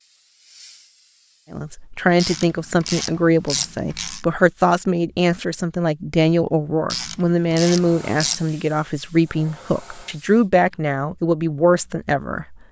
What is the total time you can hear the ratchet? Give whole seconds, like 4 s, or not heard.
4 s.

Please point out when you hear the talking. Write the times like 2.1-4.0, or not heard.
1.5-12.6.